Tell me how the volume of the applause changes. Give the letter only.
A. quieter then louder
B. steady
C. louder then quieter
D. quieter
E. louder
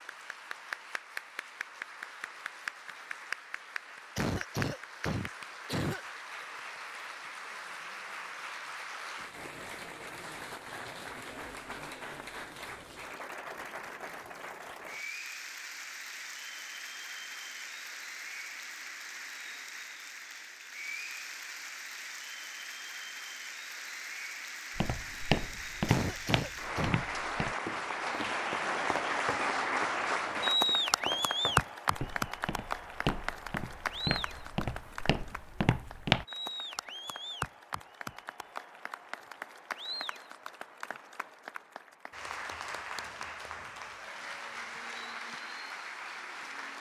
C.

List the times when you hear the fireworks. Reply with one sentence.
The fireworks can't be heard in this clip.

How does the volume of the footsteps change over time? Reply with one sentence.
The volume of the footsteps goes down, then up.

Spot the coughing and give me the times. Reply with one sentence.
The coughing can be heard from 4.2 to 6.0 s and from 25.9 to 27.0 s.